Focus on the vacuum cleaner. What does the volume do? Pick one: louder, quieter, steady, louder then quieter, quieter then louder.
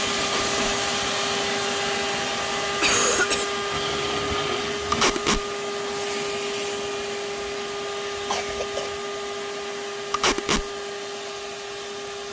quieter.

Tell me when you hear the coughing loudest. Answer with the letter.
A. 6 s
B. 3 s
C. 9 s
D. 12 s
B.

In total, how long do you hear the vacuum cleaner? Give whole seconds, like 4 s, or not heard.
12 s.